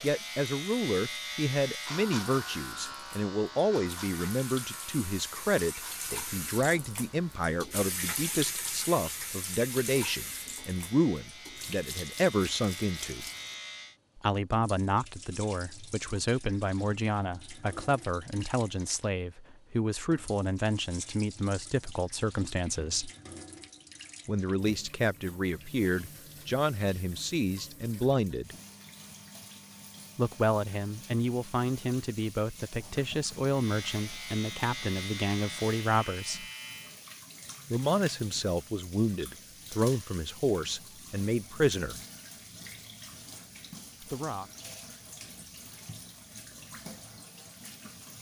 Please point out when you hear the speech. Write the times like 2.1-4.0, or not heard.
0.0-13.2, 14.2-23.1, 24.2-28.6, 30.1-36.5, 37.7-42.0, 44.0-44.5.